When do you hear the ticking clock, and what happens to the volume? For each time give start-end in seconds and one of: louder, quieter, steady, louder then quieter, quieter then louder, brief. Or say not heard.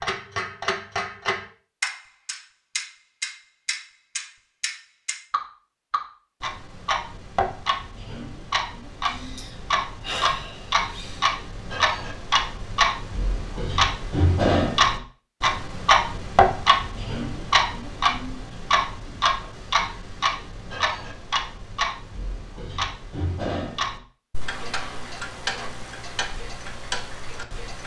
0.0-27.8 louder then quieter.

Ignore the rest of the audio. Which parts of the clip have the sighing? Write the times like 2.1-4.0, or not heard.
9.1-11.3.